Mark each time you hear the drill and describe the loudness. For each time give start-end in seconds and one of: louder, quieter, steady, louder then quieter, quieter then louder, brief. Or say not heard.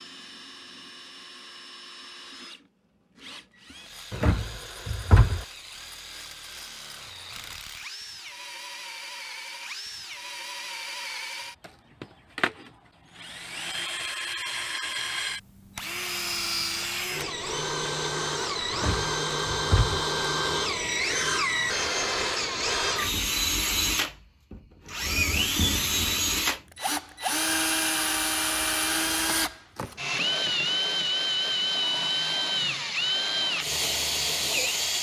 0.0-34.9 louder.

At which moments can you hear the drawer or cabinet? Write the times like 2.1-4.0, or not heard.
4.1-5.5, 18.7-20.1.